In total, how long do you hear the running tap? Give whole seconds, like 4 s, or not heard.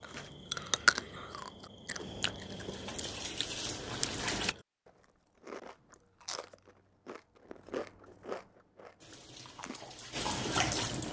4 s.